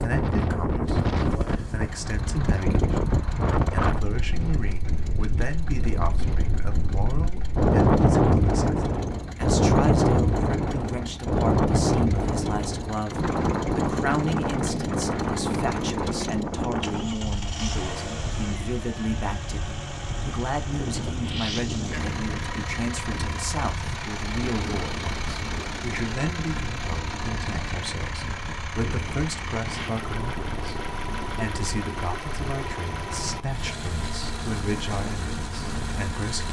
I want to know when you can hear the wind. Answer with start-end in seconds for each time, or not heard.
0.0-36.4.